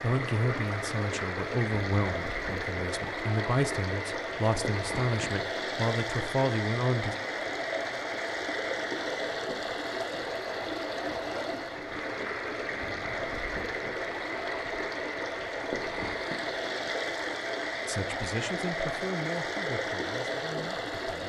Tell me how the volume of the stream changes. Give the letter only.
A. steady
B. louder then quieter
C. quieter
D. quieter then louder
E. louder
A.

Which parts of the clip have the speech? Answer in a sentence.
You can hear the speech from 0.0 to 7.2 s and from 17.9 to 21.2 s.